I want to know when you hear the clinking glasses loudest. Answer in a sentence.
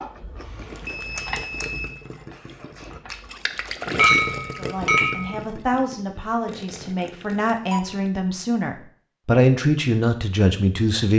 The volume of the clinking glasses peaks at 4 seconds.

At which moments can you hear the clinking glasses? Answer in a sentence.
The clinking glasses can be heard from 4.0 to 5.4 s.